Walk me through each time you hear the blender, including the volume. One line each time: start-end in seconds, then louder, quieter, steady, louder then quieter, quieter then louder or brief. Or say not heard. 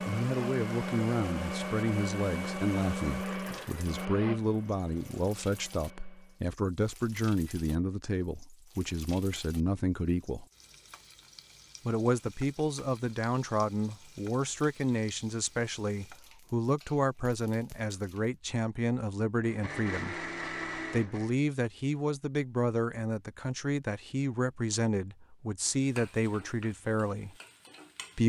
0.0-6.5 quieter
19.4-21.4 brief.